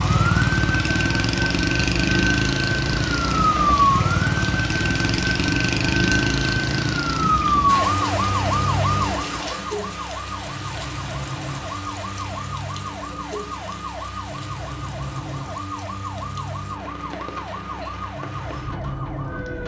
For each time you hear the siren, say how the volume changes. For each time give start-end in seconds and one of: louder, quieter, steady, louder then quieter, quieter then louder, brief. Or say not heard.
0.0-19.6 quieter.